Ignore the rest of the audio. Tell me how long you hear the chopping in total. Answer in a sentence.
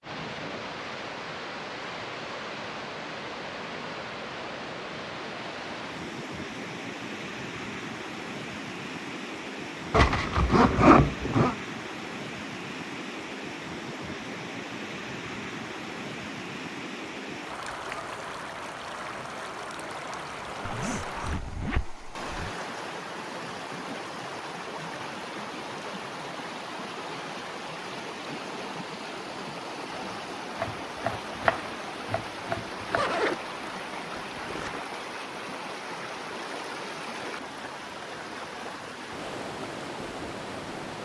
You can hear the chopping for 3 seconds altogether.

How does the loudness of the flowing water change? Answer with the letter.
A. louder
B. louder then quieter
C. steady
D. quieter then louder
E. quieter
C.